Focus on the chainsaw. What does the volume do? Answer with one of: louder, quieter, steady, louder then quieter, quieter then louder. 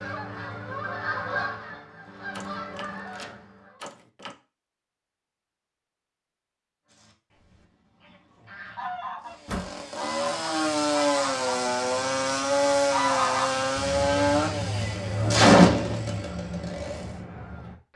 louder.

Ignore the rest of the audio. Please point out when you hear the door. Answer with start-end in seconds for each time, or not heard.
2.3-4.3, 9.3-9.8.